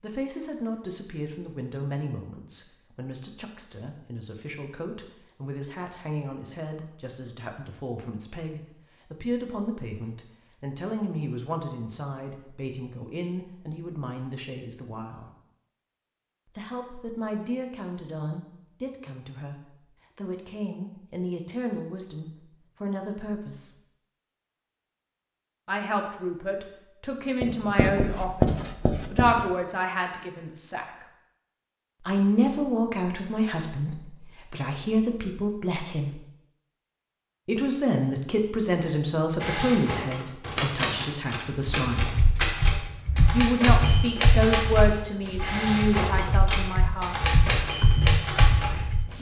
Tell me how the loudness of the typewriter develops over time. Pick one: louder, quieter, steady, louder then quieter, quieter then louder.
steady.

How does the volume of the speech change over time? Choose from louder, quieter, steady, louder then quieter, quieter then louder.
louder.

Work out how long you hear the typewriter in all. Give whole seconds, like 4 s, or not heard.
10 s.